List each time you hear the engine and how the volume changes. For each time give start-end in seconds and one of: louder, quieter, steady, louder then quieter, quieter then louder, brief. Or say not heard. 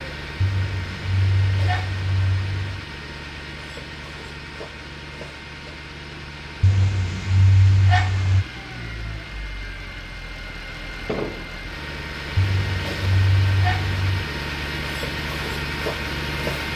0.0-16.7 louder.